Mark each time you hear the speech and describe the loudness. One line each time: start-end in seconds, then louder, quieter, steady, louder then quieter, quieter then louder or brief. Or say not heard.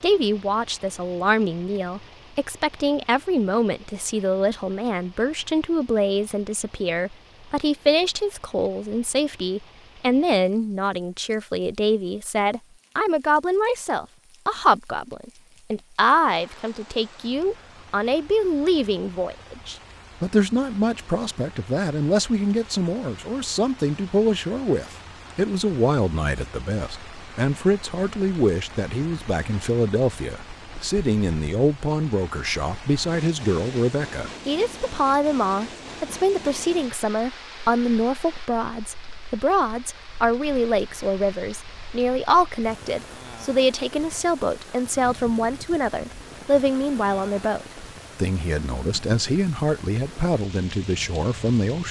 0.0-51.8 steady.